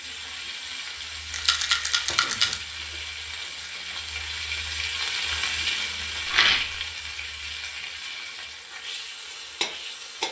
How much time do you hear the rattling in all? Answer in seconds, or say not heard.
2 s.